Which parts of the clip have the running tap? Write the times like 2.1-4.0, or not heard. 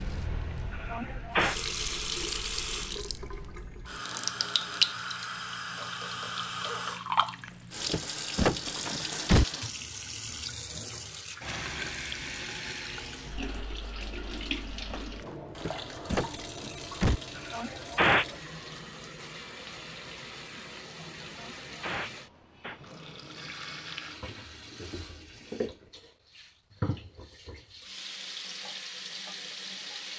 0.0-30.1.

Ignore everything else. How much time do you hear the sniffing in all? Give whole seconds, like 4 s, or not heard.
3 s.